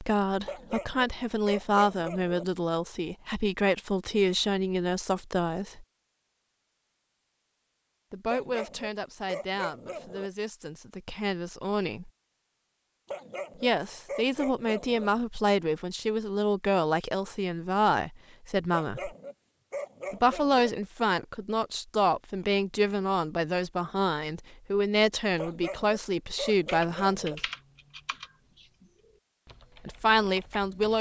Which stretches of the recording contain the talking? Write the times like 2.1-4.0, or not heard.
0.0-5.8, 8.1-12.1, 13.6-19.1, 20.1-27.4, 29.9-30.9.